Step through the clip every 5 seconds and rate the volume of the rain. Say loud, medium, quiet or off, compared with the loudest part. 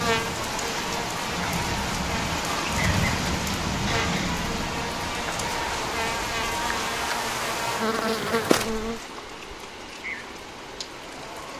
loud, medium, medium.